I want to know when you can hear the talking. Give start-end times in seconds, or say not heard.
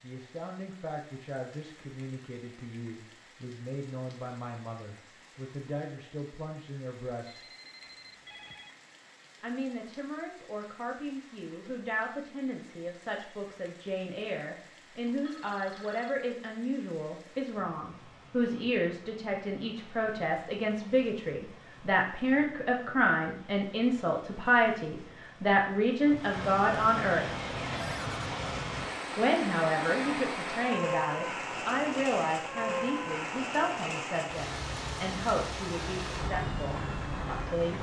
0.0-7.5, 9.4-27.2, 29.1-37.7.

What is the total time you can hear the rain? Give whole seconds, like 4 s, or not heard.
38 s.